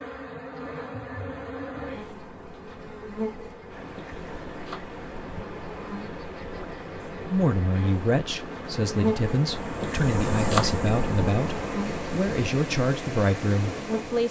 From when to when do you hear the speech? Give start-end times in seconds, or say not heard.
7.2-14.2.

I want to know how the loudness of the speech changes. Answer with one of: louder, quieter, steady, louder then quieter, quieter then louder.
steady.